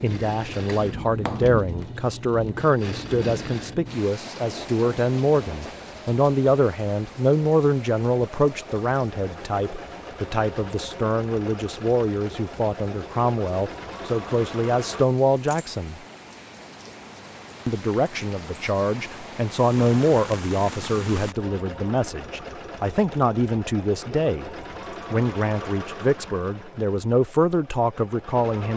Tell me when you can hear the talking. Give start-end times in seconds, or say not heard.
0.0-16.0, 17.6-24.5, 25.1-28.7.